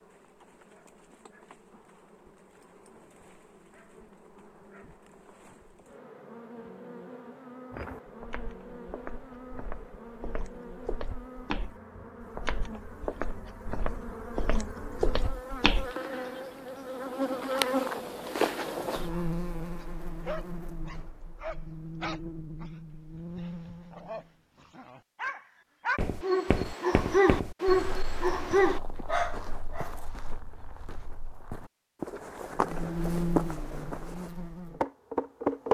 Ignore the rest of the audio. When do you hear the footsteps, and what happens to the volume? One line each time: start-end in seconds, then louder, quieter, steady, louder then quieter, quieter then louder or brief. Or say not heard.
7.7-15.9 louder
25.9-34.3 quieter then louder.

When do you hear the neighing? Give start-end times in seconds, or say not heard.
not heard.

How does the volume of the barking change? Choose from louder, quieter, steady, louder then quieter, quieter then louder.
louder.